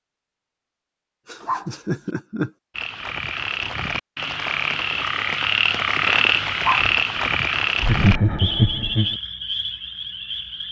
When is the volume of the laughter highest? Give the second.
8 s.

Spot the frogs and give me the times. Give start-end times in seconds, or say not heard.
2.8-10.6.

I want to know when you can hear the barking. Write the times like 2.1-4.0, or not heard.
1.4-2.1, 6.5-7.3.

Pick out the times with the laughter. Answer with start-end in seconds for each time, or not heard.
1.2-2.5, 7.8-9.2.